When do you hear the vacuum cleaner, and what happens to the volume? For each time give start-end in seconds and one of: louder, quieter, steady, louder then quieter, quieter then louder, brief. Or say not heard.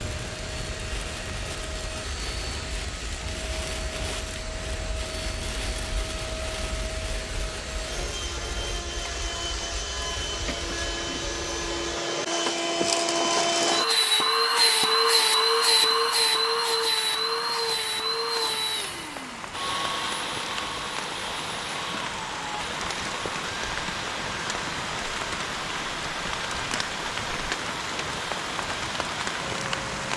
0.0-30.1 louder then quieter.